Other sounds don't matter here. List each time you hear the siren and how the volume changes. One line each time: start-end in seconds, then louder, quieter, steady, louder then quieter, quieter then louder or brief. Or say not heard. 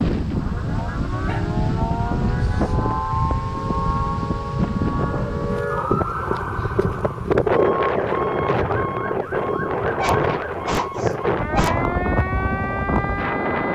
0.2-13.7 steady.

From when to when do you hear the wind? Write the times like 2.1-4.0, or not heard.
0.0-13.7.